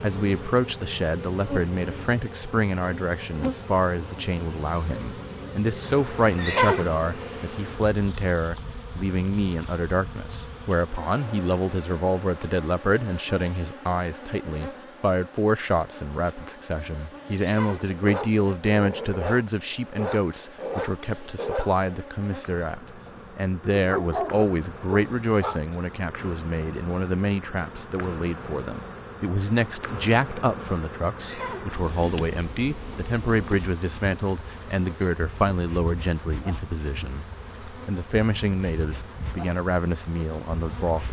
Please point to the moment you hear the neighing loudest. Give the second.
7 s.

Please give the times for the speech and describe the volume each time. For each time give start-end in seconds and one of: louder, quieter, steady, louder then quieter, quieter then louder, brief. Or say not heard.
0.0-41.0 steady.